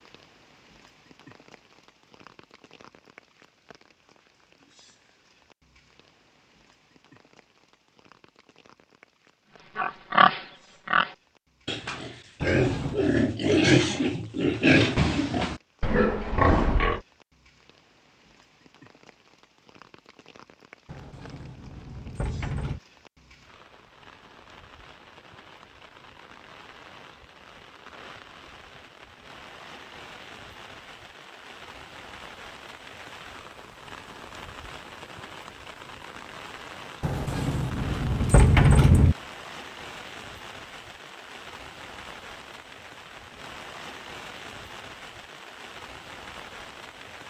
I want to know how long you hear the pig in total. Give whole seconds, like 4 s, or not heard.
7 s.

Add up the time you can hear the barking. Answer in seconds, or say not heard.
not heard.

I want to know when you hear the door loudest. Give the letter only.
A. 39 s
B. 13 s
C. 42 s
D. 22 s
A.